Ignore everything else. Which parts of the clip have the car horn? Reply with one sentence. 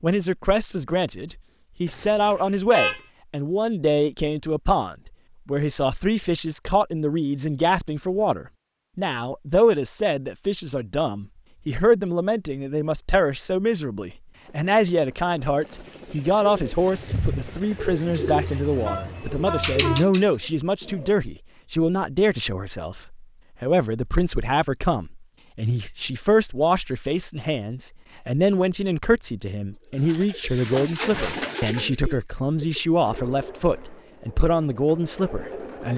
You can hear the car horn from 1.9 to 3.0 s and from 18.2 to 20.1 s.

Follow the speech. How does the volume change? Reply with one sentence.
The loudness of the speech stays about the same.